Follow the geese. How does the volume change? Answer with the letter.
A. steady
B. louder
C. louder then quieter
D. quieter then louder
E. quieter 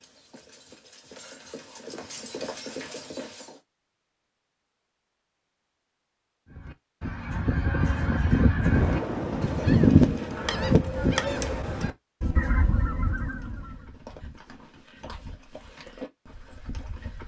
C.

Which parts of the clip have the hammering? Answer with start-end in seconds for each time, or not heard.
not heard.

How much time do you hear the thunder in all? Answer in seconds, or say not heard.
2 s.